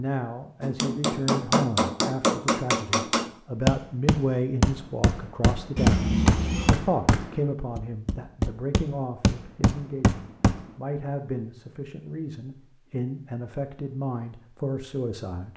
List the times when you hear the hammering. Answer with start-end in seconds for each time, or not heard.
0.6-10.7.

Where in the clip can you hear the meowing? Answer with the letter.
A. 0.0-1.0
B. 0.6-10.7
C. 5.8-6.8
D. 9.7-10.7
C.